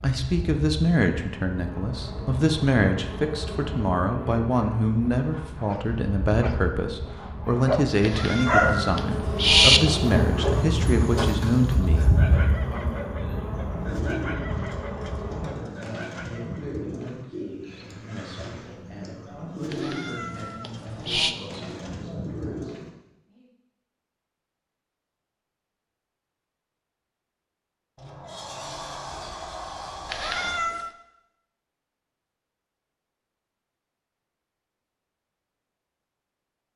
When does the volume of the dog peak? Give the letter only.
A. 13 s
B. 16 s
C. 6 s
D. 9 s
D.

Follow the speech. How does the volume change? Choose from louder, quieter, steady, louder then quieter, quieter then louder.
quieter.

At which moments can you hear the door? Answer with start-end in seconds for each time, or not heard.
27.9-30.6.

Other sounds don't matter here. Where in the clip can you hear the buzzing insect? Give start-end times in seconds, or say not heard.
0.0-15.6.